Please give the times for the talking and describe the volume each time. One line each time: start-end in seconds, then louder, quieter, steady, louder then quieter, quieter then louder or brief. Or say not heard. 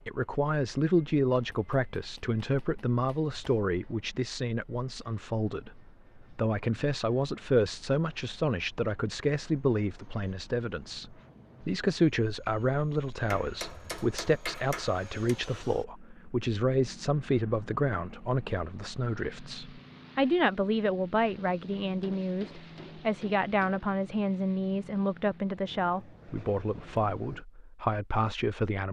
0.1-28.8 steady.